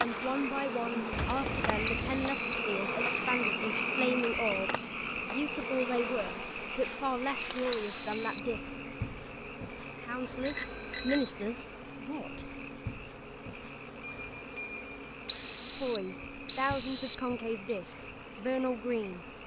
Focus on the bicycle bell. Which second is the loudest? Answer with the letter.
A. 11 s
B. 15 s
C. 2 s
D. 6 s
A.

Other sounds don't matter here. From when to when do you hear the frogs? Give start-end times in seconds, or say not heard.
0.0-19.4.